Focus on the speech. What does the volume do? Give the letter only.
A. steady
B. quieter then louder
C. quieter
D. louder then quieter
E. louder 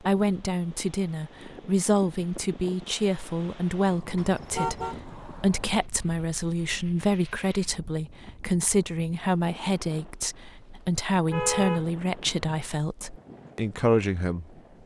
A.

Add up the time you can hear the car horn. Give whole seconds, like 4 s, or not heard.
2 s.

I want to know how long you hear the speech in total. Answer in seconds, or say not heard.
15 s.